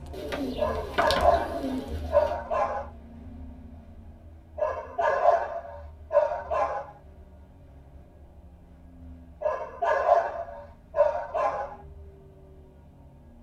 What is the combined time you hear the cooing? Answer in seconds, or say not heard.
2 s.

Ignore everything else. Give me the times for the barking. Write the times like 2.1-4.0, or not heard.
0.6-2.9, 4.5-6.9, 9.4-11.8.